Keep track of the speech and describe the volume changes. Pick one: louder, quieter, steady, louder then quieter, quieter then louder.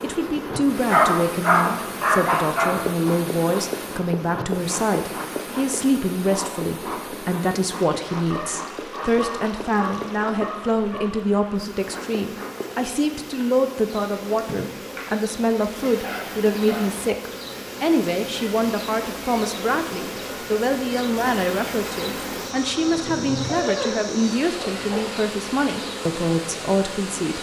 steady.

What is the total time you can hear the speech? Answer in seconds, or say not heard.
27 s.